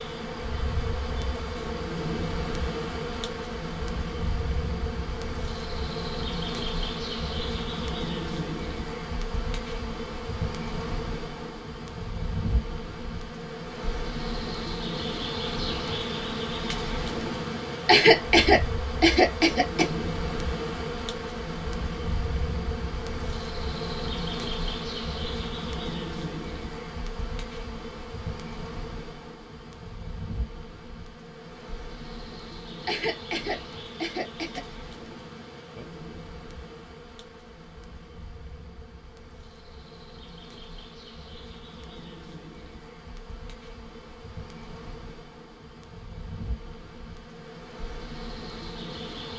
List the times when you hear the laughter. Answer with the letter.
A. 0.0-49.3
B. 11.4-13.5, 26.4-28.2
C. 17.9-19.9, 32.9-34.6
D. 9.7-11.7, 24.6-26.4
C.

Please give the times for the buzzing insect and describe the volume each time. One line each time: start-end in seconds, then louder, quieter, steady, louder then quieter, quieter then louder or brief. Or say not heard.
0.0-49.3 quieter.